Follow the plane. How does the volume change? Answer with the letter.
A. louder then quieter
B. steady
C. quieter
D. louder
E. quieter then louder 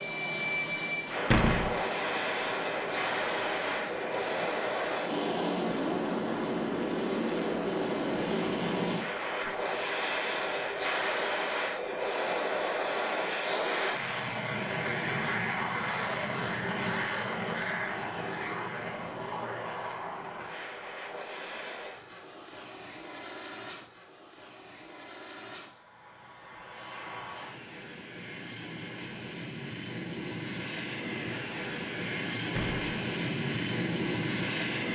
E.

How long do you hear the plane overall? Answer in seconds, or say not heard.
35 s.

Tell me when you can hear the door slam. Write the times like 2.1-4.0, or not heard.
1.3-1.8, 32.5-33.0.